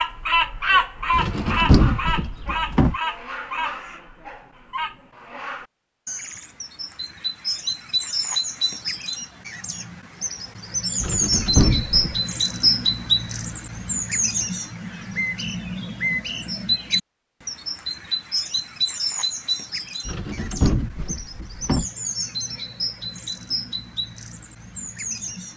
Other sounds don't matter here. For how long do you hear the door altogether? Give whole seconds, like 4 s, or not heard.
5 s.